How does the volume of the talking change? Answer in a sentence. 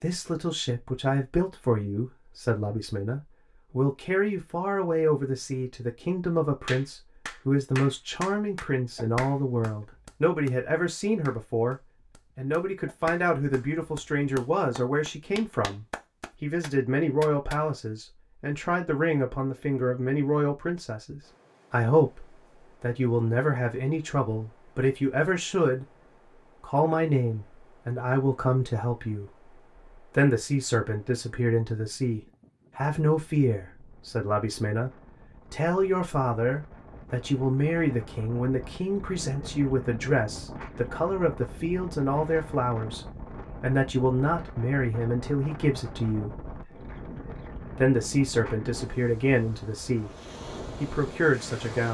The loudness of the talking stays about the same.